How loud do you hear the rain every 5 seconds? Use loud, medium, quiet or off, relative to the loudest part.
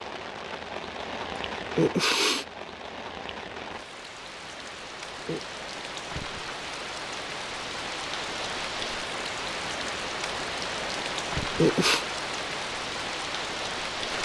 medium, loud, loud.